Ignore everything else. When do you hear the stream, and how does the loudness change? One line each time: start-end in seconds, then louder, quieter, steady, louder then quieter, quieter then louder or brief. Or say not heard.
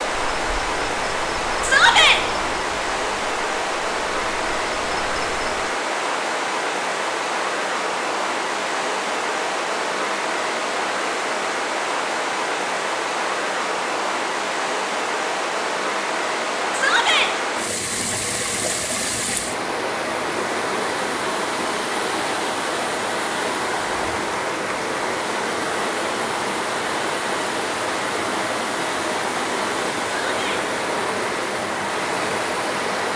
0.0-33.1 steady.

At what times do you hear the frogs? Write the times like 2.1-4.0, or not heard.
not heard.